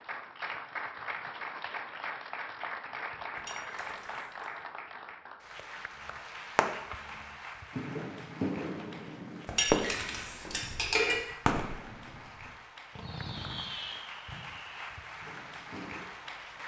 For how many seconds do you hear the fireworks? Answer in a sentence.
You can hear the fireworks for 10 seconds altogether.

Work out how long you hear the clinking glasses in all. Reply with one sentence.
The clinking glasses can be heard for 3 seconds in total.